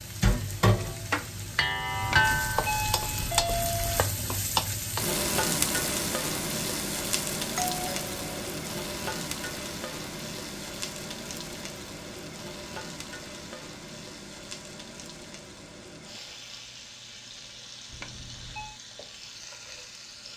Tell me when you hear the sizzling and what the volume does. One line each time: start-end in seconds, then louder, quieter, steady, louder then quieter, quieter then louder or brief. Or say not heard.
0.0-20.3 quieter.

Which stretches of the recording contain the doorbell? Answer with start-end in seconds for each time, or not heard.
2.0-4.0, 7.5-8.3, 17.9-18.8.